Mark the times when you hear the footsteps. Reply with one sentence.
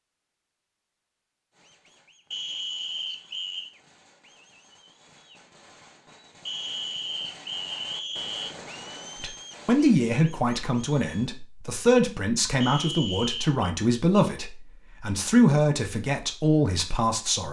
The footsteps can't be heard in this clip.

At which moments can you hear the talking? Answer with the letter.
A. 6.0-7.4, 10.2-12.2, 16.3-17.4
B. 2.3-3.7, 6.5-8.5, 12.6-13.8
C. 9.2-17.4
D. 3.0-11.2
C.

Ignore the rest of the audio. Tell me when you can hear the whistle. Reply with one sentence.
The whistle can be heard from 2.3 to 3.7 s, from 6.5 to 8.5 s and from 12.6 to 13.8 s.